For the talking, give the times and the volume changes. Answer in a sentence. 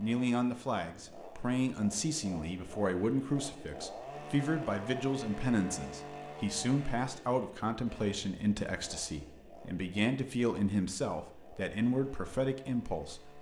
You can hear the talking from 0.0 to 13.3 s, at a steady volume.